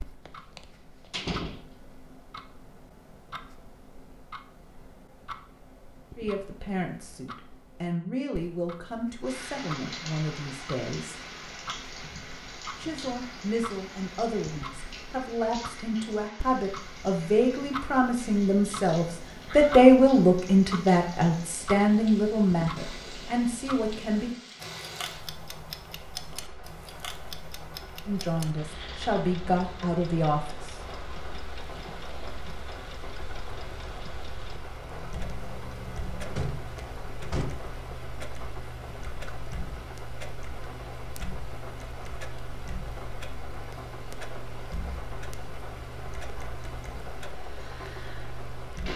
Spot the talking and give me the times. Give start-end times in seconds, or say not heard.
6.2-11.2, 12.8-24.4, 28.1-30.8.